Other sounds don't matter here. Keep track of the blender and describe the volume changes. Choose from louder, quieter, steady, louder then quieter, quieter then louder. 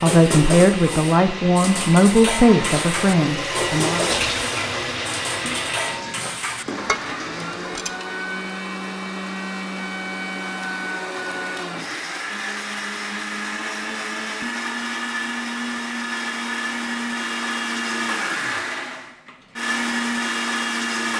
louder.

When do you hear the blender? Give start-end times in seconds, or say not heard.
0.0-21.1.